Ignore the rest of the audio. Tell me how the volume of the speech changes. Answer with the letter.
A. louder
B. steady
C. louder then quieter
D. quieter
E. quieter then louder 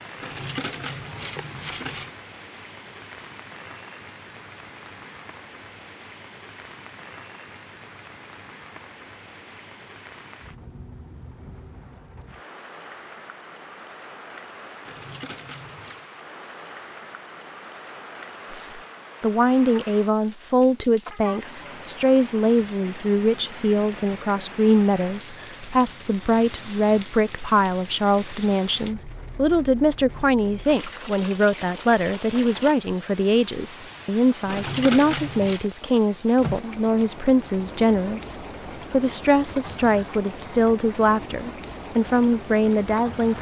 B.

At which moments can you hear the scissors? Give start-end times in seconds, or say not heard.
not heard.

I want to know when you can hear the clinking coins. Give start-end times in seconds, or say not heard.
0.2-2.1, 14.8-16.1, 34.5-35.7.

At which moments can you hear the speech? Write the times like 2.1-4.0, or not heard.
18.5-43.3.